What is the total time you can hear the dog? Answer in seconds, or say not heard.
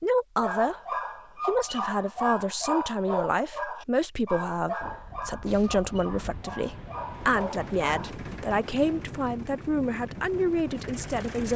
8 s.